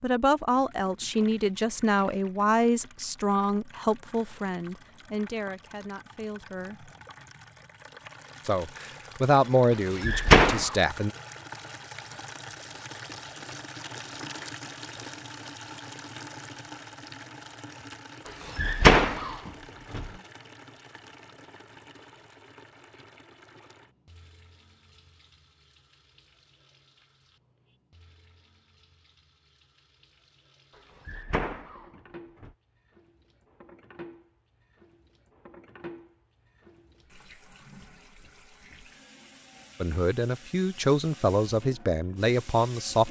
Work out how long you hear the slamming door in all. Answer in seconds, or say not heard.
4 s.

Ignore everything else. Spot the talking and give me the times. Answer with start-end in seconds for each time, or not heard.
0.0-6.9, 8.4-11.1, 39.8-43.0.